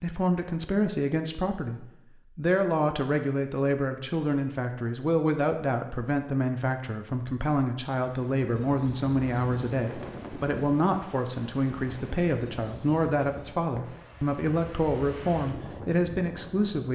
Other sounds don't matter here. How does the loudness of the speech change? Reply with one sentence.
The volume of the speech stays about the same.